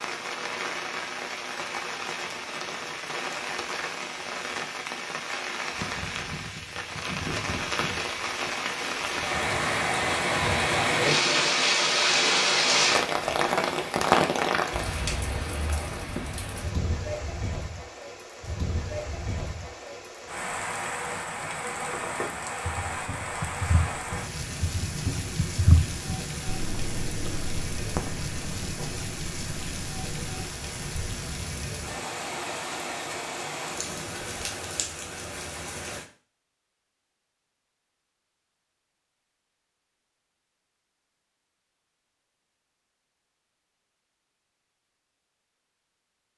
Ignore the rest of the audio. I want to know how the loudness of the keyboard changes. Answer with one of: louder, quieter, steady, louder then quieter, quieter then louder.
louder then quieter.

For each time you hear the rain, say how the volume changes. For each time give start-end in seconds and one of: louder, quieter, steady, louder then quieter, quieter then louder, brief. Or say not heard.
0.0-36.0 louder then quieter.